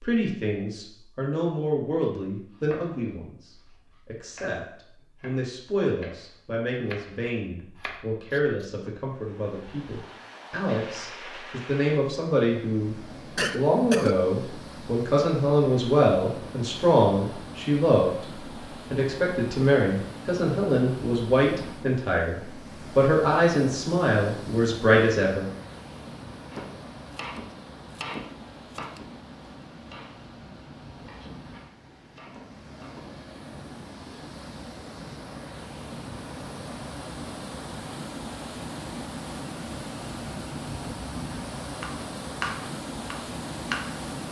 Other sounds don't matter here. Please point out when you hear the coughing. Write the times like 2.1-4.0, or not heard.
13.3-14.2.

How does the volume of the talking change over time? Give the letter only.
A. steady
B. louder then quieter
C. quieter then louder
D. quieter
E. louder
E.